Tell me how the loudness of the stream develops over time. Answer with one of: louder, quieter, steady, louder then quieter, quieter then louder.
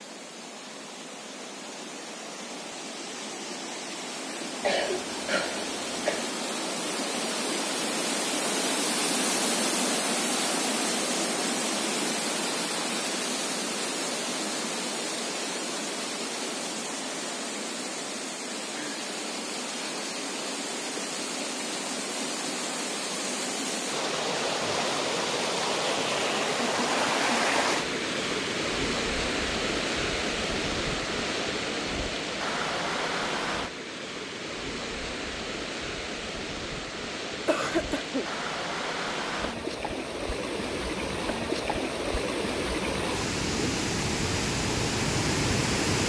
steady.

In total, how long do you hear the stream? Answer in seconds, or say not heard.
46 s.